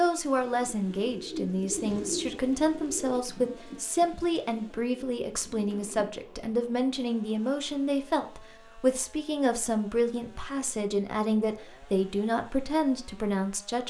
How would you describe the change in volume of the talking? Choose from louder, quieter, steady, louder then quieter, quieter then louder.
steady.